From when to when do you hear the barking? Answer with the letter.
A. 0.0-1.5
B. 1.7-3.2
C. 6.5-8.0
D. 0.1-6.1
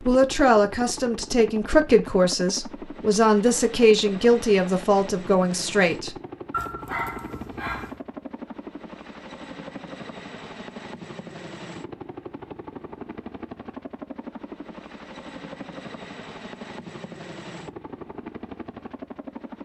C.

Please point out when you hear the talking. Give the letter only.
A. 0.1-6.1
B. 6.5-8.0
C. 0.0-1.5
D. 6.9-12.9
A.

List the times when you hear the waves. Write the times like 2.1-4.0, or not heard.
not heard.